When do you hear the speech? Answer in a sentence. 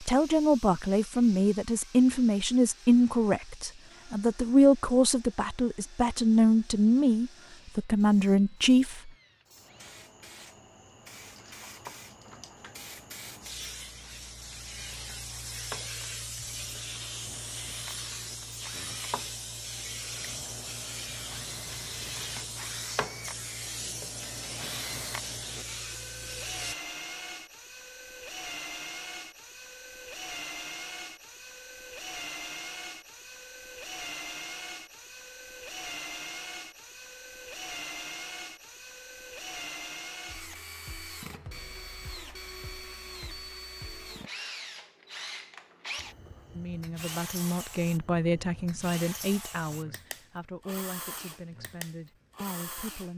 The speech can be heard from 0.0 to 9.1 s and from 46.5 to 53.1 s.